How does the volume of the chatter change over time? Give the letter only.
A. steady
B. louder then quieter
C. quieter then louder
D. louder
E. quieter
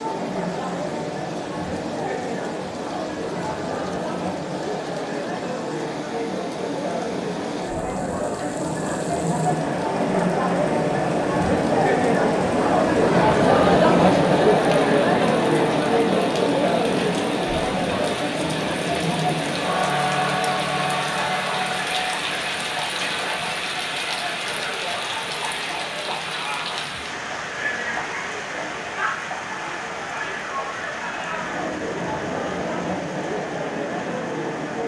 B.